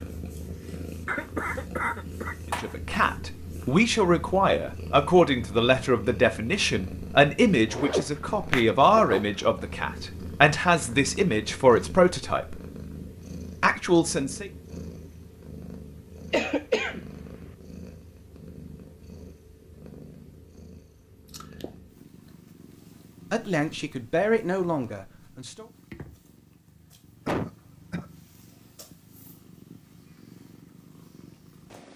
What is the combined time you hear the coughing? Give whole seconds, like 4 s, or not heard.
4 s.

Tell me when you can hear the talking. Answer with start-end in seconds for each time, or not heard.
2.6-12.6, 13.6-14.5, 23.3-25.6.